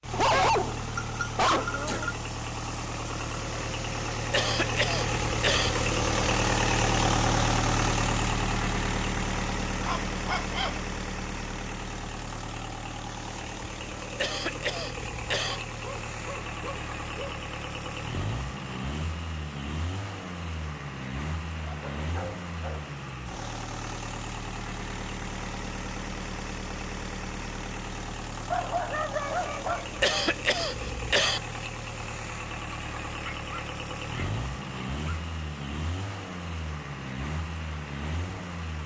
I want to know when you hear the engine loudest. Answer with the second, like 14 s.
7 s.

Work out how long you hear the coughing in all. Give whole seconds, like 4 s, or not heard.
4 s.